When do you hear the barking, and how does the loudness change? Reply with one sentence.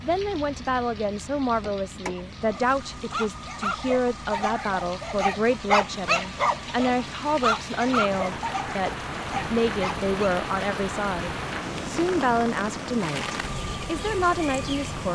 The barking can be heard from 2.1 to 10.1 s, getting louder then quieter.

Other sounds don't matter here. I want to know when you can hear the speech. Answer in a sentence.
You can hear the speech from 0.0 to 15.1 s.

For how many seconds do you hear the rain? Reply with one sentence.
You can hear the rain for 15 seconds altogether.